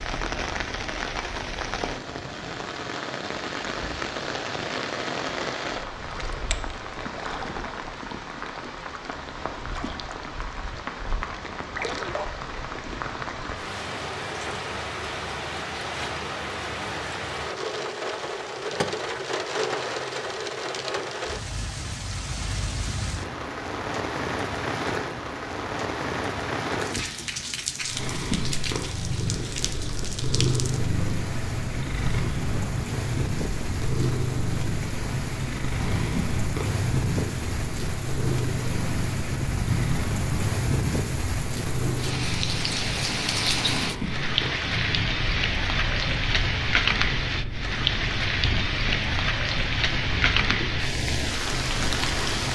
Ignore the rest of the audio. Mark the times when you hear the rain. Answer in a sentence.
The rain can be heard from 0.0 to 52.5 s.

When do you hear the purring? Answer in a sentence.
The purring can be heard from 27.8 to 52.5 s.